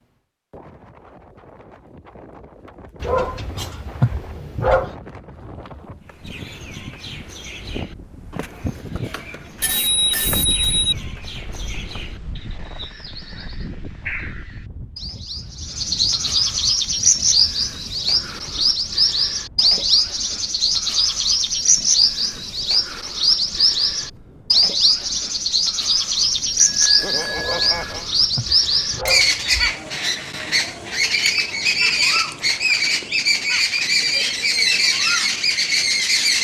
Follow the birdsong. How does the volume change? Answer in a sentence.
The volume of the birdsong goes up.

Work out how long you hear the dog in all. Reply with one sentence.
You can hear the dog for 4 seconds altogether.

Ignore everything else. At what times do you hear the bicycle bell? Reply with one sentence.
You can hear the bicycle bell from 8.9 to 10.9 s and from 26.6 to 28.1 s.